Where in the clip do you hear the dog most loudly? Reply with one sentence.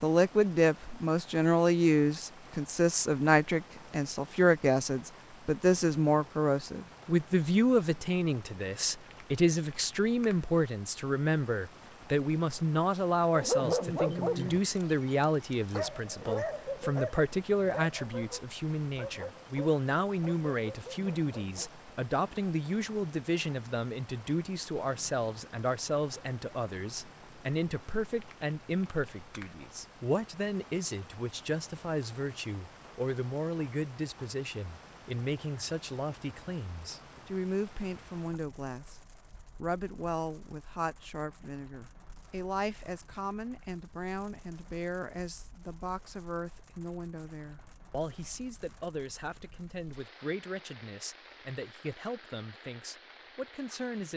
The volume of the dog peaks at 14 seconds.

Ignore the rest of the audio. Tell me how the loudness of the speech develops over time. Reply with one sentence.
The volume of the speech goes down.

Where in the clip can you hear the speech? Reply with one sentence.
You can hear the speech from 0.0 to 54.1 s.